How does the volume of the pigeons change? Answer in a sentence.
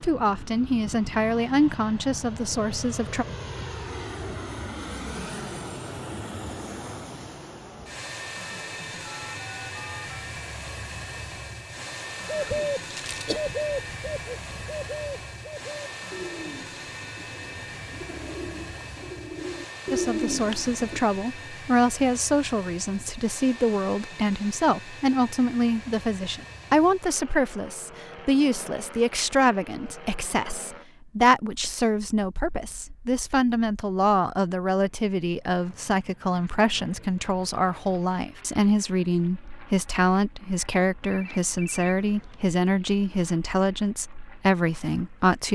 The volume of the pigeons goes down, then up.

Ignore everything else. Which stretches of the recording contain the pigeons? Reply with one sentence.
You can hear the pigeons from 12.3 to 21.0 s.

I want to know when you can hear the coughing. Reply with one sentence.
The coughing can be heard from 12.4 to 13.4 s.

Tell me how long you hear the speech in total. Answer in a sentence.
You can hear the speech for 29 seconds altogether.